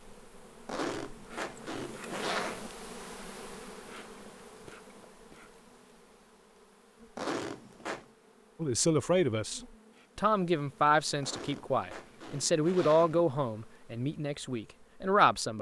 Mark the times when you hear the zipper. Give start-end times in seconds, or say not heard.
0.7-2.7, 7.2-8.1, 11.2-13.2.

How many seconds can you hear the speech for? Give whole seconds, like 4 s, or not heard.
7 s.